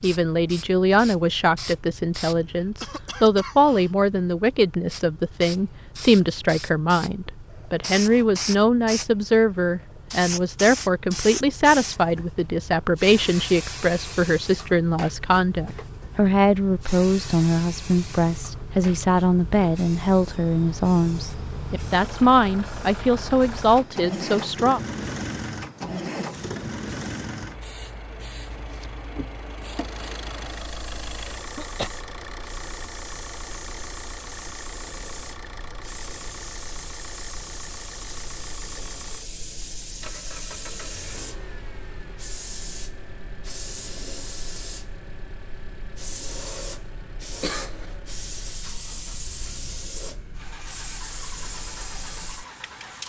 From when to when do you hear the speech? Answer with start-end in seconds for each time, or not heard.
0.0-24.8.